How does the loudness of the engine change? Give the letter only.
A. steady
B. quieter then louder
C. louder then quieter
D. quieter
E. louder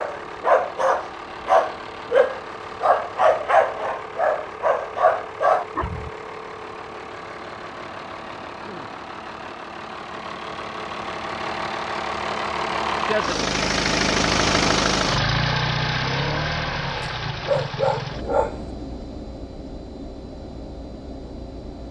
C.